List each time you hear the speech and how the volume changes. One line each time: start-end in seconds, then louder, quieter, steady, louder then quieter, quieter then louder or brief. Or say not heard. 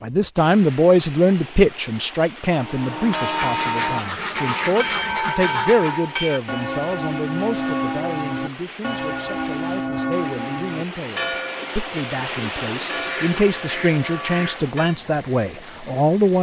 0.0-16.3 quieter then louder.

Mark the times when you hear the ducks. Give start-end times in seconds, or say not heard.
3.4-6.0, 13.1-14.7.